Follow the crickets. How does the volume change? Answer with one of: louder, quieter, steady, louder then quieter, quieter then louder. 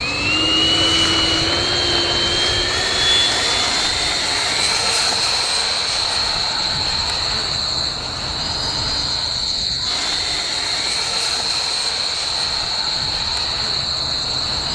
steady.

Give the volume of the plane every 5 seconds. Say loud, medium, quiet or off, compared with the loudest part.
loud, medium, medium.